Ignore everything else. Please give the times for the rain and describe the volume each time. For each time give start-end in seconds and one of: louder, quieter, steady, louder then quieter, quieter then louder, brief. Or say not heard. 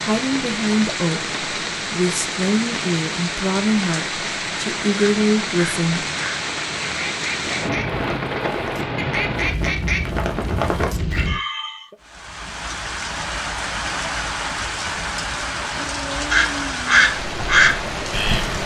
0.0-18.6 steady.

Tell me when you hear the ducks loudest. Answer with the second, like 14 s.
18 s.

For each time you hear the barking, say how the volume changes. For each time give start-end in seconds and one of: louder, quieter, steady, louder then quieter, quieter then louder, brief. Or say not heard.
not heard.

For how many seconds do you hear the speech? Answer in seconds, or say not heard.
6 s.